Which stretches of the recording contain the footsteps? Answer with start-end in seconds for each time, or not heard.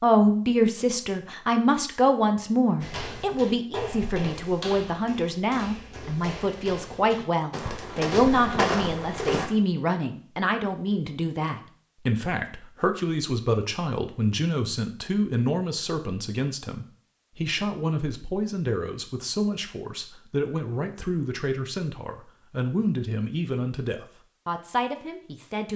2.8-9.4.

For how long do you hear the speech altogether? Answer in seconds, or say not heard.
26 s.